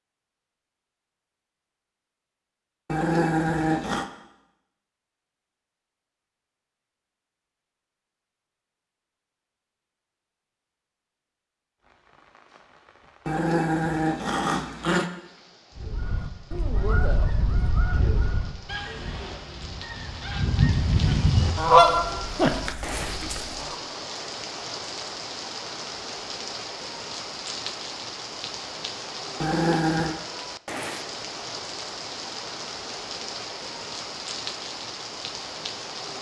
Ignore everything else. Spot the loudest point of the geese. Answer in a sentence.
The loudest moment of the geese is at 22 seconds.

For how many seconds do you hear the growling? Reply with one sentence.
The growling can be heard for 4 seconds in total.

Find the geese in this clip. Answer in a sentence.
The geese can be heard from 15.8 to 23.8 s.